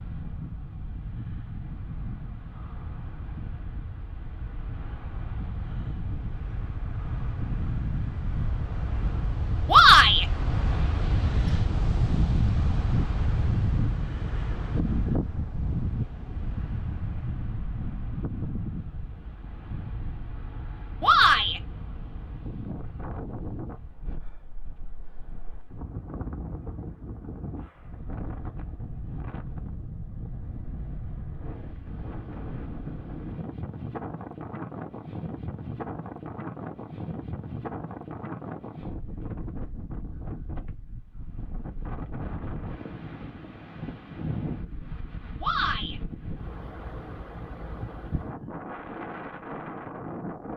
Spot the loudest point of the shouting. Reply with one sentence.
The volume of the shouting peaks at 10 seconds.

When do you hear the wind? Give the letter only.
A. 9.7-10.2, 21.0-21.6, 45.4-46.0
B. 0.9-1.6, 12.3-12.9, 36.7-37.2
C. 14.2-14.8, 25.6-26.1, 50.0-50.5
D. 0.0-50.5
D.